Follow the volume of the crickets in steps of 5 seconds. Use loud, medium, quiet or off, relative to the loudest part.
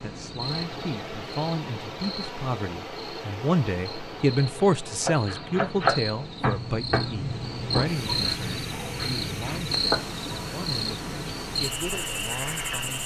medium, loud, loud.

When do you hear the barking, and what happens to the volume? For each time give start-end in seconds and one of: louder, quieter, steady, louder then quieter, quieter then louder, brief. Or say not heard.
not heard.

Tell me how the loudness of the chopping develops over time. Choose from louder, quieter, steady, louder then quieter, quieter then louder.
quieter.